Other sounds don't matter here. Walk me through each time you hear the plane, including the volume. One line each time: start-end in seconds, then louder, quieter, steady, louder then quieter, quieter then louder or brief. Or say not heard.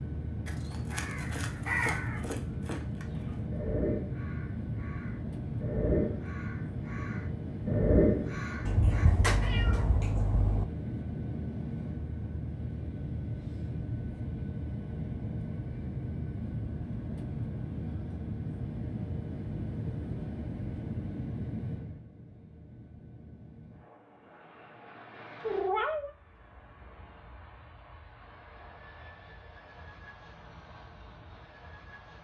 0.0-32.1 quieter.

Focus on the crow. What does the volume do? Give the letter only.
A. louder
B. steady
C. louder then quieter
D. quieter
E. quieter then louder
E.